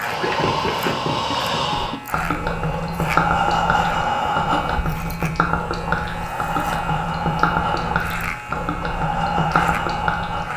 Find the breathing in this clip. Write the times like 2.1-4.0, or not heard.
0.0-10.5.